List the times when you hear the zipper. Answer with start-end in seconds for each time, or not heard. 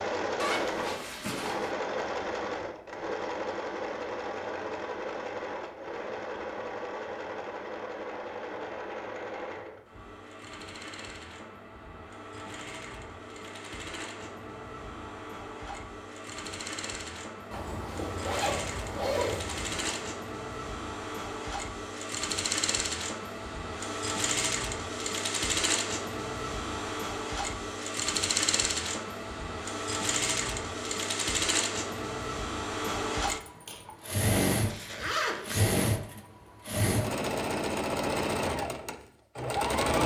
0.3-1.7, 17.5-20.1, 34.6-35.7.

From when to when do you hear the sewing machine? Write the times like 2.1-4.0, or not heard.
0.0-40.0.